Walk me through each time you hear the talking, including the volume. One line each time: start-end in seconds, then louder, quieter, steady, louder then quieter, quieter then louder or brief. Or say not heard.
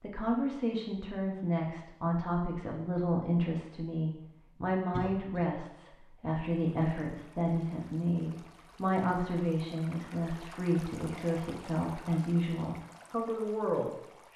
0.0-14.3 steady.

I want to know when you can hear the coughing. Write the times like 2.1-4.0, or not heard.
4.9-5.5.